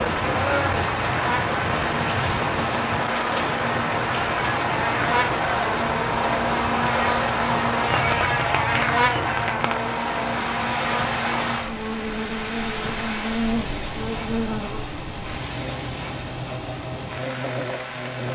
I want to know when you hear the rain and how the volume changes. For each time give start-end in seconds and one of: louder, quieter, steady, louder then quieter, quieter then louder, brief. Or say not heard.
0.0-18.3 quieter.